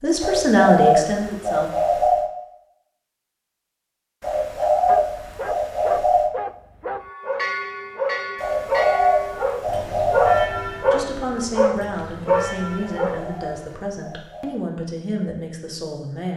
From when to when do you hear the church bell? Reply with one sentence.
You can hear the church bell from 7.0 to 13.8 s.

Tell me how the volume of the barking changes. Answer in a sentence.
The loudness of the barking goes up.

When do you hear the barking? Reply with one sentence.
The barking can be heard from 4.8 to 13.3 s.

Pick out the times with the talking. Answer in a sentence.
The talking can be heard from 0.0 to 1.7 s and from 10.9 to 16.3 s.